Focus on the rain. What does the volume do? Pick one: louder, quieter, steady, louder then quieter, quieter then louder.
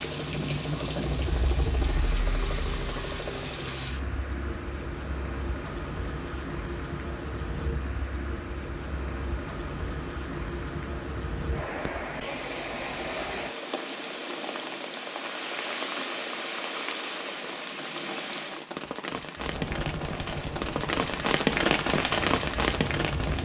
louder.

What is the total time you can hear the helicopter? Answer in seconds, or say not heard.
8 s.